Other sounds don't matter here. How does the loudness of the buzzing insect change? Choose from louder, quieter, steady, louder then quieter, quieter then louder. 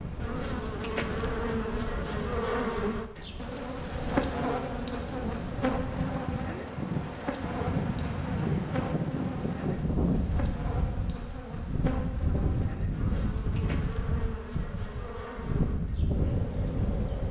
quieter.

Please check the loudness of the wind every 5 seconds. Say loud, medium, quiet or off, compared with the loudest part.
medium, loud, loud, loud.